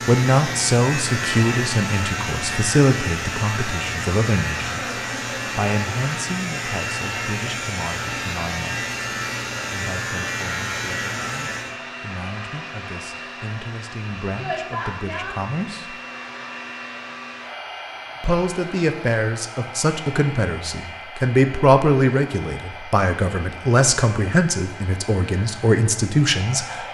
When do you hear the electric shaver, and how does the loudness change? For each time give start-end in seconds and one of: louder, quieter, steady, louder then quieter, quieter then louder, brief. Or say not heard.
0.0-11.8 steady.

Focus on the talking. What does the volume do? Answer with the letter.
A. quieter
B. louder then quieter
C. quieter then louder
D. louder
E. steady
C.